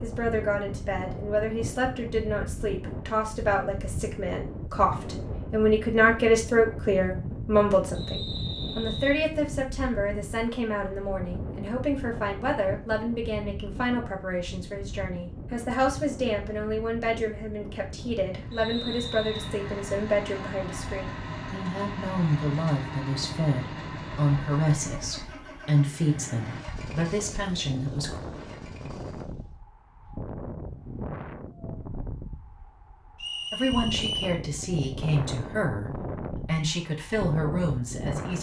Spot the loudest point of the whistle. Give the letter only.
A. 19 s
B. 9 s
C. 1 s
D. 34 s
D.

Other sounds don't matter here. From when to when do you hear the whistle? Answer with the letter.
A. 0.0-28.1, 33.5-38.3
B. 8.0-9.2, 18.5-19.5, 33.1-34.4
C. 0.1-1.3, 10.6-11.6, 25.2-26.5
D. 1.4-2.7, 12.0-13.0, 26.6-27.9
B.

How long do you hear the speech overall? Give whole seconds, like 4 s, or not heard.
33 s.